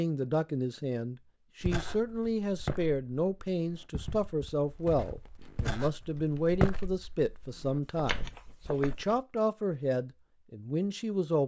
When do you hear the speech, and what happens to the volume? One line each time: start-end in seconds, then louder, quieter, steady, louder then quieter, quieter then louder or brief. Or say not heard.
0.0-11.4 steady.